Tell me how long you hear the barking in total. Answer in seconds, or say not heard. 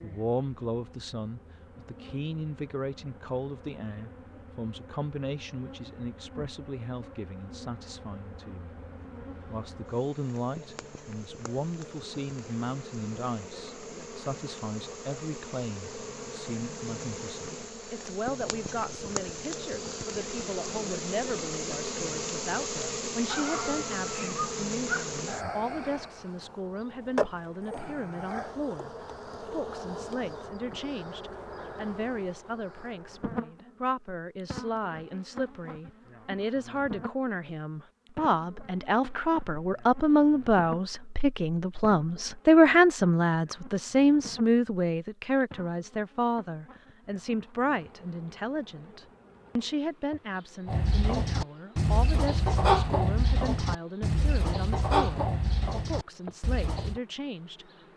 2 s.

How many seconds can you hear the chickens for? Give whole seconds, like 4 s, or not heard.
6 s.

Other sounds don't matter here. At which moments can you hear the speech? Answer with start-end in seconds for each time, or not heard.
0.0-8.8, 9.4-57.7.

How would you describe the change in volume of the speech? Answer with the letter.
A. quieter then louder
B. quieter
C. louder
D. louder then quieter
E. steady
D.